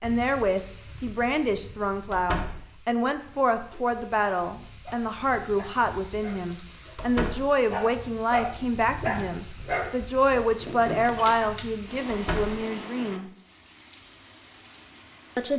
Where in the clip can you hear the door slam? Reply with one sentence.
The door slam can be heard from 2.1 to 2.5 s, from 7.0 to 7.5 s and from 12.1 to 12.6 s.